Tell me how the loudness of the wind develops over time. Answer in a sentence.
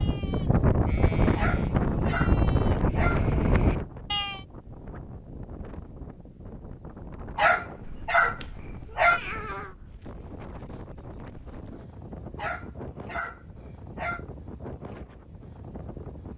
The volume of the wind goes down.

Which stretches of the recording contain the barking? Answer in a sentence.
The barking can be heard from 1.4 to 3.2 s, from 7.3 to 9.2 s and from 12.3 to 14.2 s.